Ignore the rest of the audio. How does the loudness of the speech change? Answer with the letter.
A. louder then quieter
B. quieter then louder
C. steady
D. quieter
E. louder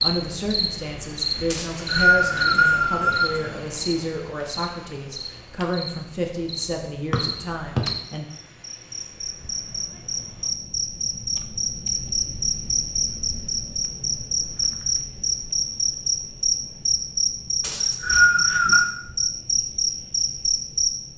C.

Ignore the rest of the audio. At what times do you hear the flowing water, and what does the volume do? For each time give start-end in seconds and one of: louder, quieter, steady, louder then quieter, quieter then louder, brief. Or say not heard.
not heard.